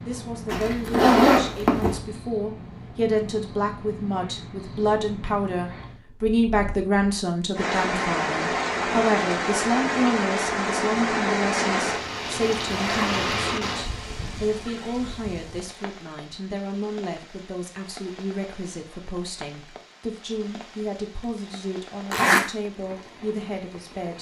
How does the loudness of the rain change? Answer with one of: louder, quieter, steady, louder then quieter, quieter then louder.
quieter.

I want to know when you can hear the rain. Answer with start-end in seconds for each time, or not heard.
7.5-24.1.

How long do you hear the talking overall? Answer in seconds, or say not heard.
24 s.